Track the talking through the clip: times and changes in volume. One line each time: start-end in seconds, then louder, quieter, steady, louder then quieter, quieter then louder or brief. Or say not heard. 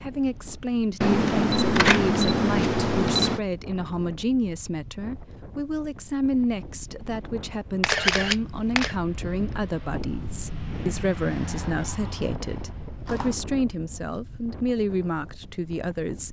0.0-16.2 steady.